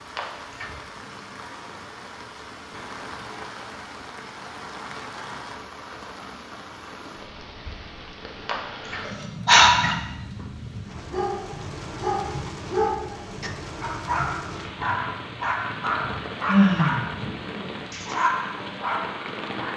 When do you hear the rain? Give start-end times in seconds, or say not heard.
0.0-19.7.